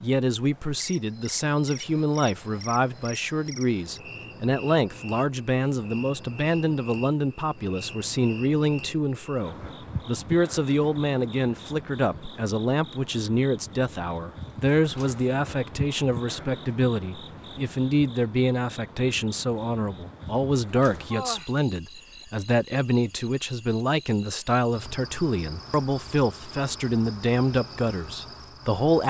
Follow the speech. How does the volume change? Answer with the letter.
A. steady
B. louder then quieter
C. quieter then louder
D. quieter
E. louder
A.